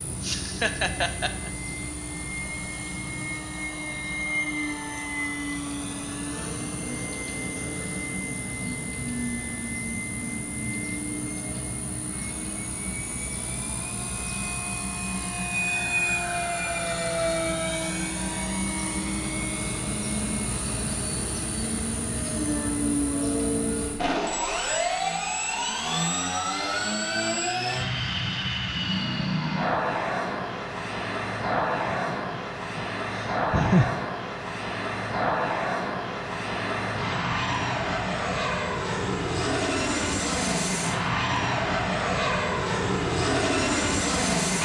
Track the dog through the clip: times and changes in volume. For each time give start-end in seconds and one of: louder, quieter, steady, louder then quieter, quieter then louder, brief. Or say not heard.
not heard.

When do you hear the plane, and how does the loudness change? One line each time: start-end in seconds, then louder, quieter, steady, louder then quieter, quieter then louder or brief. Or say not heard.
0.0-44.5 louder.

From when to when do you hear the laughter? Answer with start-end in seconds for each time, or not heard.
0.2-1.5, 31.9-34.0.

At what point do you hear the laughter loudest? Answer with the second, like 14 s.
34 s.